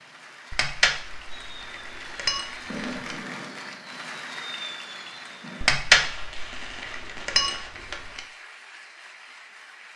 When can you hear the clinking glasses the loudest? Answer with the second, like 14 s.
6 s.